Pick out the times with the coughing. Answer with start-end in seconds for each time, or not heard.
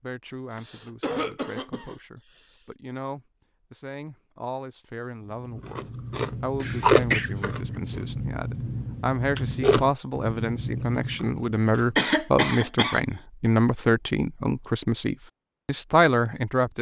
0.5-2.6, 6.5-7.3, 11.9-13.0.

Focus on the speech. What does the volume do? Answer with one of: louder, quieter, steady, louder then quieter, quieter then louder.
louder.